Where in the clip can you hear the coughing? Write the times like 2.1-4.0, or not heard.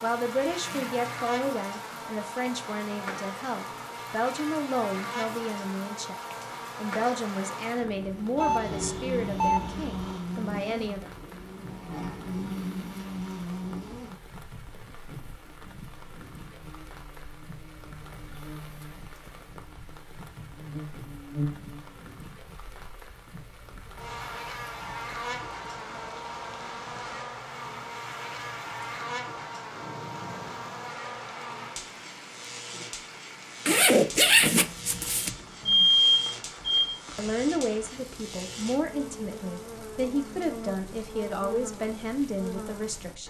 not heard.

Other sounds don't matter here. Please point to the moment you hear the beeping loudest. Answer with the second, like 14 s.
36 s.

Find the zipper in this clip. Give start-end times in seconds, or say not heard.
0.5-1.2, 33.6-35.3.